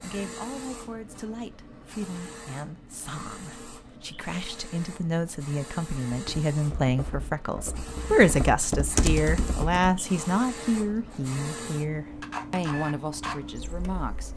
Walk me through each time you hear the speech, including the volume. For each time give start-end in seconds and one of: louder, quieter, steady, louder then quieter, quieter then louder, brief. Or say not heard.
0.0-14.3 louder then quieter.